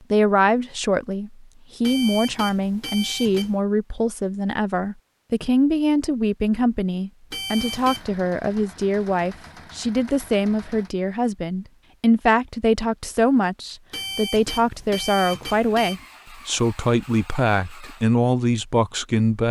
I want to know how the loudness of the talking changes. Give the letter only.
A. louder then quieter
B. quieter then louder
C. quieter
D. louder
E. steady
E.